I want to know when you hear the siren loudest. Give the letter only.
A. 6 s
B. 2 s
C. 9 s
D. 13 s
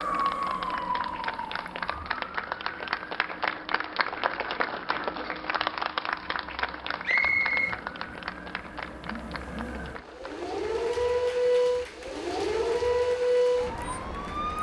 D.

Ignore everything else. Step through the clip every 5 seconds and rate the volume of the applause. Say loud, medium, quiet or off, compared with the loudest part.
loud, loud, quiet.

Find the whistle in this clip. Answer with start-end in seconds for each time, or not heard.
7.0-7.8.